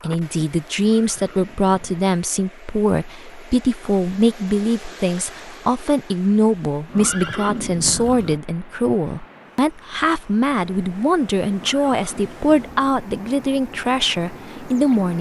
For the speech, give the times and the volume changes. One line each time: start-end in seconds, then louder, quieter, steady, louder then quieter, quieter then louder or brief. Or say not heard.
0.0-15.1 steady.